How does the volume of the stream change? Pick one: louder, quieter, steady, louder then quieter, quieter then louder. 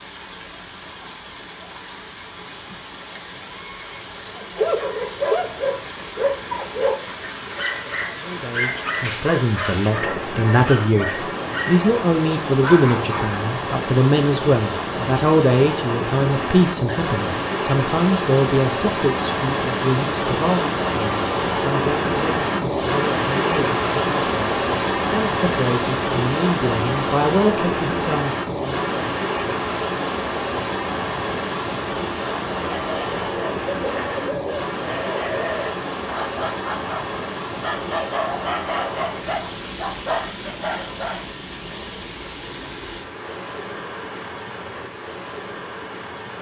louder then quieter.